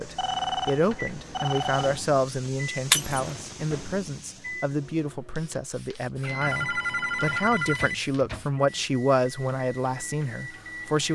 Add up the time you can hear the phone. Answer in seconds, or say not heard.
4 s.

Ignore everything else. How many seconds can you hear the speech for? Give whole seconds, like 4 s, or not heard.
11 s.